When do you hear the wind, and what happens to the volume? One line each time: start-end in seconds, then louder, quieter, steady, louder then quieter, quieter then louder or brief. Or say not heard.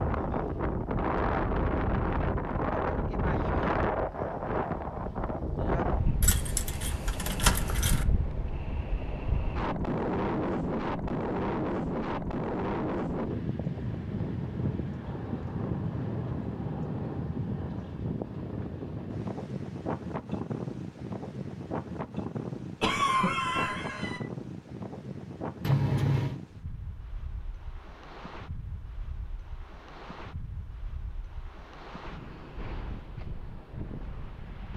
0.0-34.7 quieter.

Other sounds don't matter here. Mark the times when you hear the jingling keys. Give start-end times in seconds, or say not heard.
6.2-8.1, 25.6-26.4.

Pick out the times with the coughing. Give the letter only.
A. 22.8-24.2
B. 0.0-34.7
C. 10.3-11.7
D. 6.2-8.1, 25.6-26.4
A.